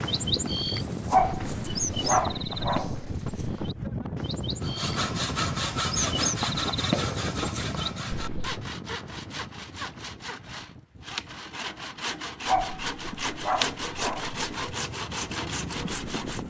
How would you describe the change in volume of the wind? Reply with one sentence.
The volume of the wind goes down, then up.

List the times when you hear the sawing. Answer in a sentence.
You can hear the sawing from 4.6 to 16.4 s.